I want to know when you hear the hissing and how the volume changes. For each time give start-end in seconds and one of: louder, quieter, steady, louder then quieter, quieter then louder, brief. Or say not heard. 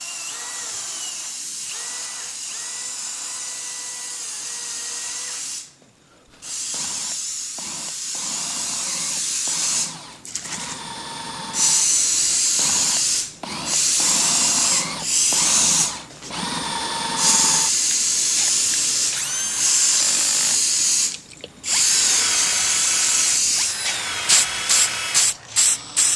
0.0-26.1 louder.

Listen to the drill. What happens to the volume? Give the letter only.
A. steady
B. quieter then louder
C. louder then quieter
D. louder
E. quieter
D.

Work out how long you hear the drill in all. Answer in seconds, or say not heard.
26 s.